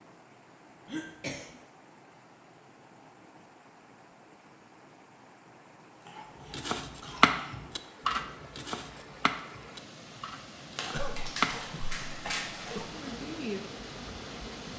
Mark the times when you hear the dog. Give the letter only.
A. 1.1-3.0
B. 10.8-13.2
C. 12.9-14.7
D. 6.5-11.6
B.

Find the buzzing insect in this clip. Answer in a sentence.
You can hear the buzzing insect from 12.9 to 14.7 s.